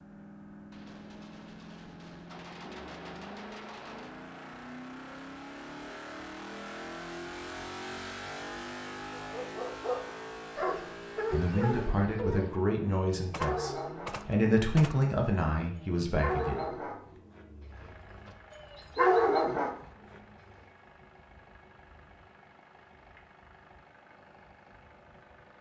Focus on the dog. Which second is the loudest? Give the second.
19 s.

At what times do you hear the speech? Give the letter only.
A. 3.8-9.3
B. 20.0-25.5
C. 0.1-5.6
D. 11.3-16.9
D.